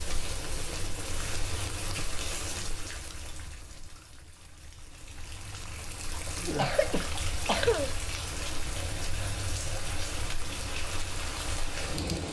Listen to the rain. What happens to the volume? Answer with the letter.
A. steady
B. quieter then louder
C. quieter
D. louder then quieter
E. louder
B.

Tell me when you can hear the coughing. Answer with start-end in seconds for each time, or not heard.
6.1-7.9.